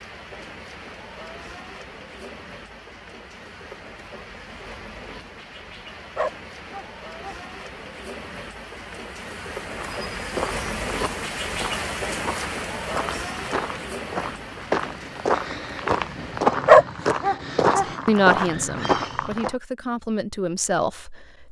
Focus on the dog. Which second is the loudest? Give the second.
17 s.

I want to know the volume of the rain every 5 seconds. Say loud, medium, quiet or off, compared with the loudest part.
medium, medium, loud, medium, off.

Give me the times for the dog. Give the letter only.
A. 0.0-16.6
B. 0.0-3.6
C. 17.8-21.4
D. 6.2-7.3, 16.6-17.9
D.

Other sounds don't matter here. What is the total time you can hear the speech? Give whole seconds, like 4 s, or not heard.
4 s.